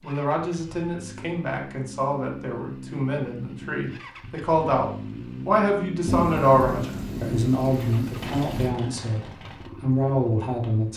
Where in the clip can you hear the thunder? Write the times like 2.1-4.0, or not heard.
6.0-8.8.